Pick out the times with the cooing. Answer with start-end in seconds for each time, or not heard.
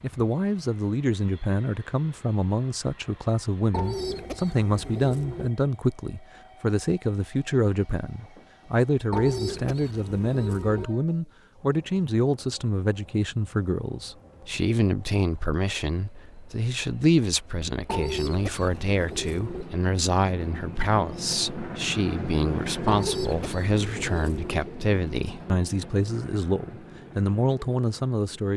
3.7-5.5, 9.1-10.9, 17.9-19.6, 22.9-24.6.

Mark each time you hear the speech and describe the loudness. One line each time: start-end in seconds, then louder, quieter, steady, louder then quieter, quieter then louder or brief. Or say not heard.
0.0-28.5 steady.